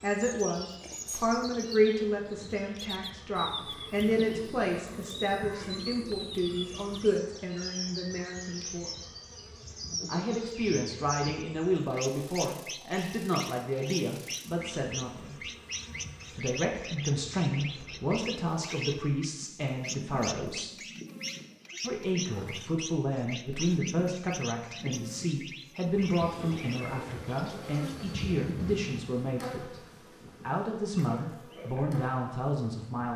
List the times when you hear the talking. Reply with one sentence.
The talking can be heard from 0.0 to 8.9 s, from 10.1 to 15.4 s, from 16.3 to 20.8 s, from 21.8 to 29.8 s and from 30.4 to 33.1 s.